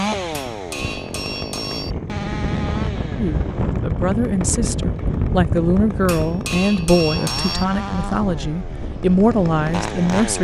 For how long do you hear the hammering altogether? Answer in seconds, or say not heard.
3 s.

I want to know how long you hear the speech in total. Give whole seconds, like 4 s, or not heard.
7 s.